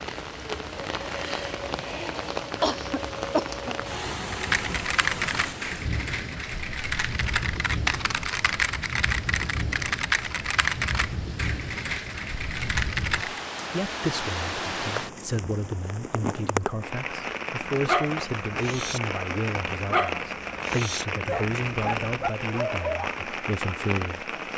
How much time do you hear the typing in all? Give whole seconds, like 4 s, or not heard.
9 s.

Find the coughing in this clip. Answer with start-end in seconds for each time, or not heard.
2.6-3.8.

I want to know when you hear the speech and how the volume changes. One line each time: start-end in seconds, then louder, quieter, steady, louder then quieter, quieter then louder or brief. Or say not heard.
13.7-24.3 steady.